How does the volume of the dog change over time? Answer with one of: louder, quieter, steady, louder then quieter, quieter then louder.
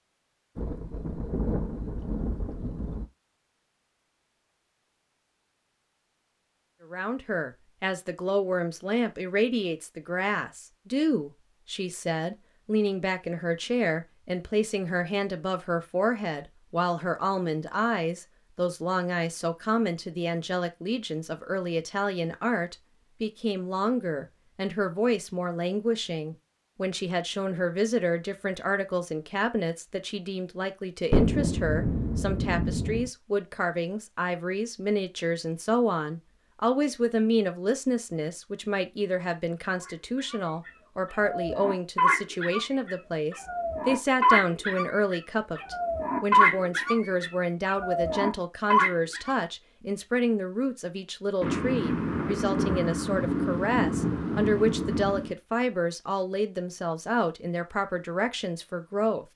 louder.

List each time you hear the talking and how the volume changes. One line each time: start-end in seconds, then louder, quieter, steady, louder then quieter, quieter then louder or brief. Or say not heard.
6.9-59.2 steady.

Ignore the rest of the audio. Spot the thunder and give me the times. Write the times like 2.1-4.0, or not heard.
0.6-3.0, 31.1-33.1, 51.4-55.4.